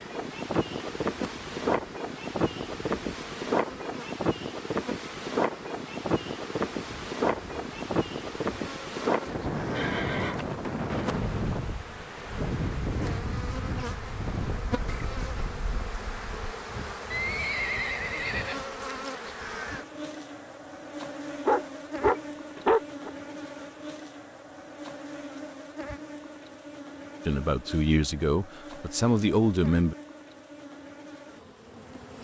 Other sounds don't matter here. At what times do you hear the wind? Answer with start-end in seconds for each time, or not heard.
0.0-16.6.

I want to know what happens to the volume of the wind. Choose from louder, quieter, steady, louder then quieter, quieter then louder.
quieter.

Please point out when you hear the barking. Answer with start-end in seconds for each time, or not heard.
21.4-23.1.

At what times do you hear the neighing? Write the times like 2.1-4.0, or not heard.
9.8-10.4, 17.1-19.1.